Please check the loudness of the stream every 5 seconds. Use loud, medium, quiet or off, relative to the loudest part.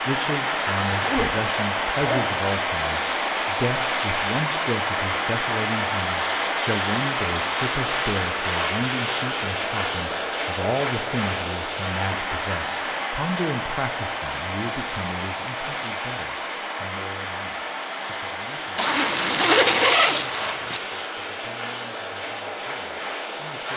loud, loud, loud, medium, medium.